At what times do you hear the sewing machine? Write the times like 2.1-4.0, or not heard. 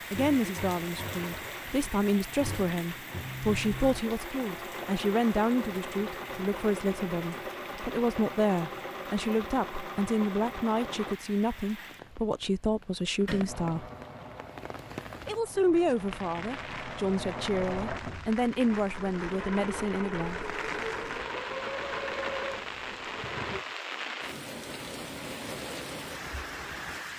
0.0-11.2, 13.4-23.6.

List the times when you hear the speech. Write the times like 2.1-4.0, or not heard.
0.1-13.9, 15.2-20.4.